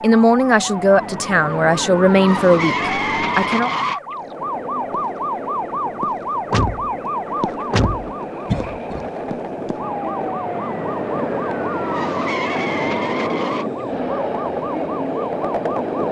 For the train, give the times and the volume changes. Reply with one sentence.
The train can be heard from 4.0 to 16.0 s, getting louder.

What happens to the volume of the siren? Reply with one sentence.
The loudness of the siren stays about the same.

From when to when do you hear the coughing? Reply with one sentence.
You can hear the coughing from 8.4 to 9.1 s.